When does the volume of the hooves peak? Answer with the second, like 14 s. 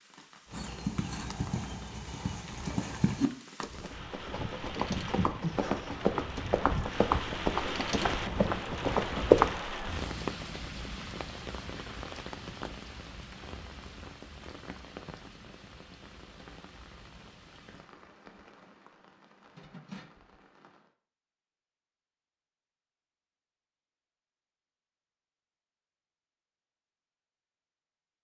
9 s.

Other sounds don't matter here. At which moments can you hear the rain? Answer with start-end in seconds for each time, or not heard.
0.0-20.9.